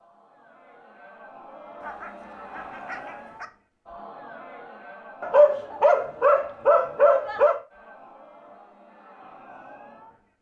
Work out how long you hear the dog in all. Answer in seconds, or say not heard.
4 s.